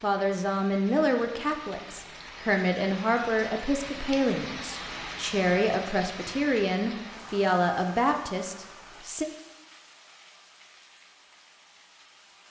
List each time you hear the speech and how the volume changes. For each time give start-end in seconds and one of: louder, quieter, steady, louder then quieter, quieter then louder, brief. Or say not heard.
0.0-9.2 steady.